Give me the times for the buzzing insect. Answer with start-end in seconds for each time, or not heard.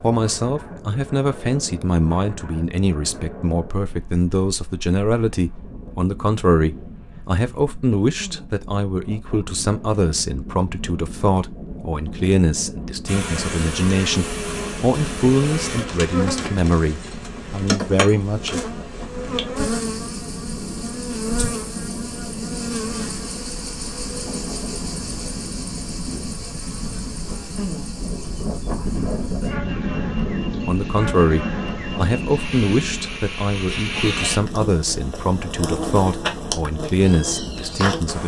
13.1-38.2.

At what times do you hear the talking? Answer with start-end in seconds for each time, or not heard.
0.0-18.6, 30.6-38.2.